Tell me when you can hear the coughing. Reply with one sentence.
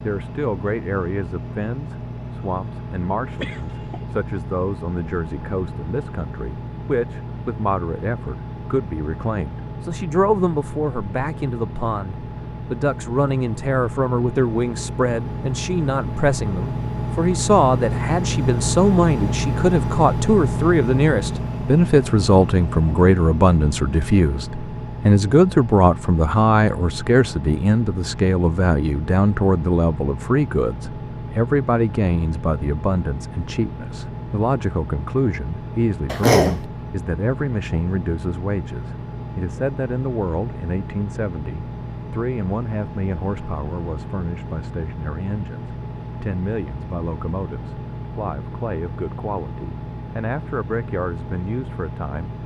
You can hear the coughing from 3.4 to 4.0 s and from 36.0 to 36.6 s.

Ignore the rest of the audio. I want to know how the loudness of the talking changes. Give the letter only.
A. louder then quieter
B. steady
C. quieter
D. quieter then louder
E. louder
A.